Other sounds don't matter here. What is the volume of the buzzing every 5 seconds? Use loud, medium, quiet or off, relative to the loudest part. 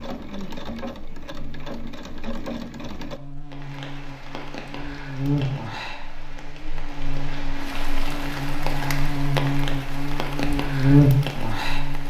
quiet, medium, loud.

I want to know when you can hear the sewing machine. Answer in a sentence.
The sewing machine can be heard from 0.0 to 3.2 s.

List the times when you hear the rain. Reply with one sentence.
You can hear the rain from 3.5 to 12.0 s.